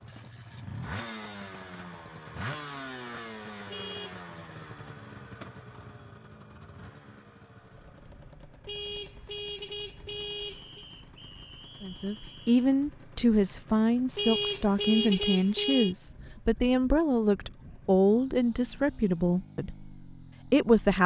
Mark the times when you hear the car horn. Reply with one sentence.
The car horn can be heard from 3.6 to 4.2 s, from 8.7 to 10.8 s and from 14.2 to 15.9 s.